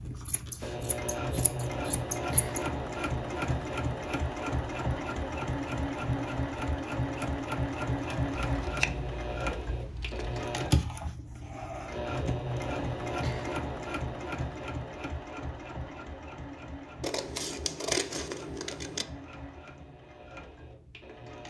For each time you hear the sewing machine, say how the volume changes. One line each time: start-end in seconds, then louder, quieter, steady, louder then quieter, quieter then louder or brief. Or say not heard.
0.0-21.4 quieter.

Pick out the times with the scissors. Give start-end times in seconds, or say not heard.
0.2-2.6, 8.6-10.4, 17.0-19.1.